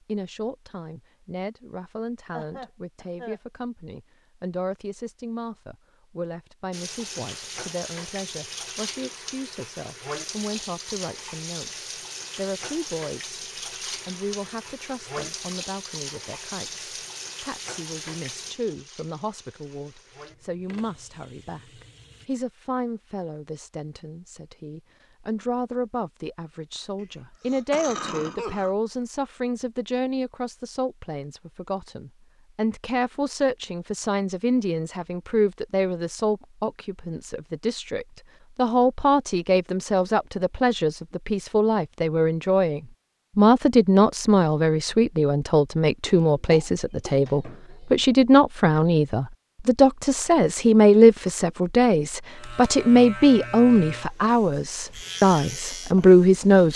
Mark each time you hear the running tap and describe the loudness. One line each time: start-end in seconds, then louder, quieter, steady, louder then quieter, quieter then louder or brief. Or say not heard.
6.7-22.3 quieter.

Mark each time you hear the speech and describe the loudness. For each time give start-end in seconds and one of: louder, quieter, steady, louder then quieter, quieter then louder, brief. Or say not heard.
0.0-56.7 louder.